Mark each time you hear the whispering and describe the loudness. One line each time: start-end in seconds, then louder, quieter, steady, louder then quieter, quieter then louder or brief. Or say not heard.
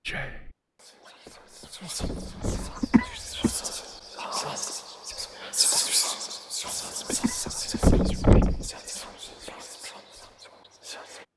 0.1-11.2 louder then quieter.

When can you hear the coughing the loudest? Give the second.
3 s.